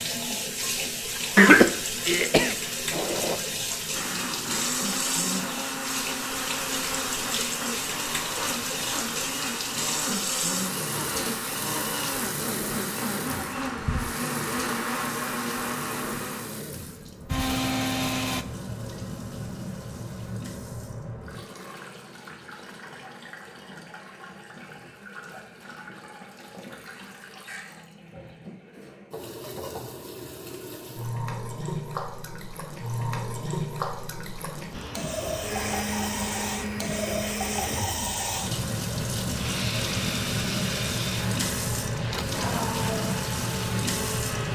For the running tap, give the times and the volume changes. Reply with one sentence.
You can hear the running tap from 0.0 to 44.5 s, getting quieter then louder.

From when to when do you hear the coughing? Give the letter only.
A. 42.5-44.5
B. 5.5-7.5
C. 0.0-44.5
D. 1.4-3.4
D.